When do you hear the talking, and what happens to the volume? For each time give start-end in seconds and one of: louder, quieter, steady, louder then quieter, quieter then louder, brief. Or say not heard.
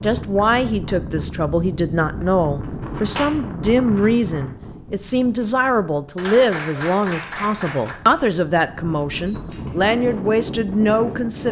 0.0-11.4 steady.